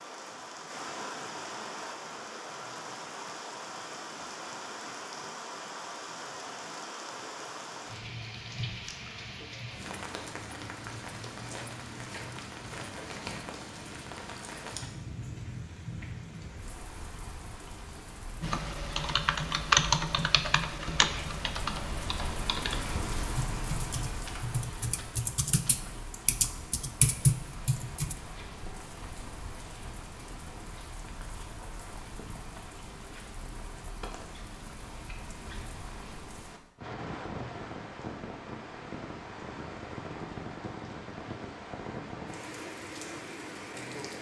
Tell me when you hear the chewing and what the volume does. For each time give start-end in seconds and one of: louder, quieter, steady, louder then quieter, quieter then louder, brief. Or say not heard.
not heard.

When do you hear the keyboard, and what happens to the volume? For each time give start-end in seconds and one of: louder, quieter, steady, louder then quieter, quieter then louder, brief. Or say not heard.
18.4-28.1 quieter then louder.